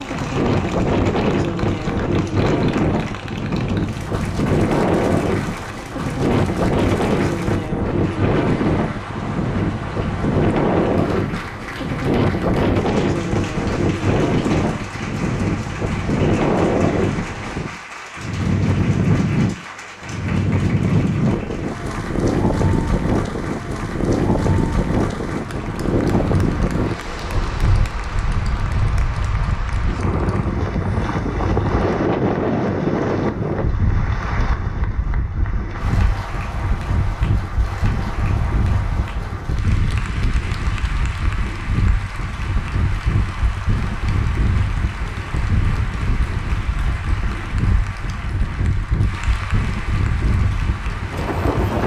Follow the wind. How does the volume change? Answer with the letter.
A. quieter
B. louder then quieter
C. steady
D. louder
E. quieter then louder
A.